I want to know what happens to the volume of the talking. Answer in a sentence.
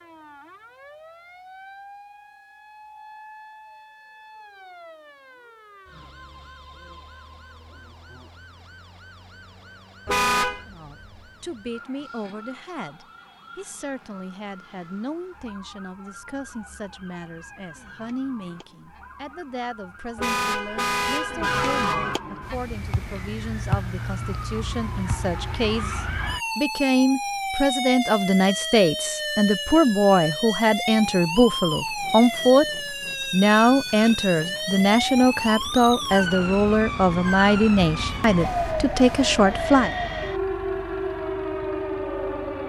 The loudness of the talking goes up.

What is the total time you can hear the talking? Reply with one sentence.
The talking can be heard for 29 seconds in total.